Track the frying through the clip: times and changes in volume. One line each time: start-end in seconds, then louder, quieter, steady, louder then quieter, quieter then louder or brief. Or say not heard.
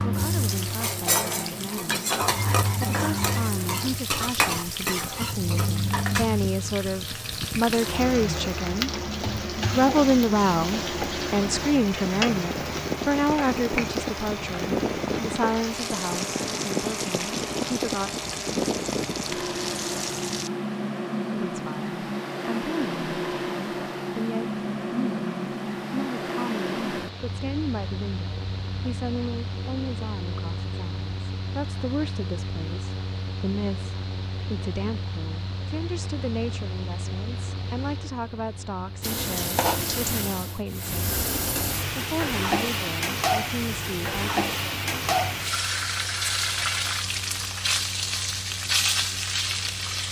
0.0-20.5 quieter
39.0-50.0 steady.